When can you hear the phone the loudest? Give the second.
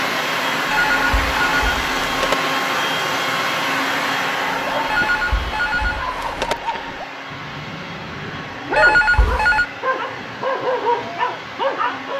9 s.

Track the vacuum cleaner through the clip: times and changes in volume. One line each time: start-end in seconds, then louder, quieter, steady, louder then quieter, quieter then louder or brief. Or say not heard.
0.0-12.1 quieter.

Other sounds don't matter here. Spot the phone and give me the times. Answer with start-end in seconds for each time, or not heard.
0.7-2.4, 4.9-6.5, 8.8-9.7.